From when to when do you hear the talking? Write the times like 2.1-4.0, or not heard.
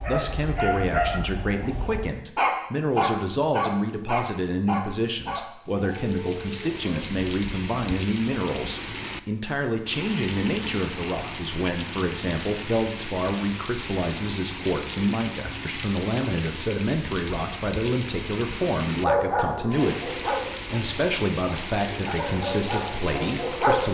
0.1-23.9.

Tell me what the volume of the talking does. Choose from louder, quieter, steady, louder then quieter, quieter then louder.
steady.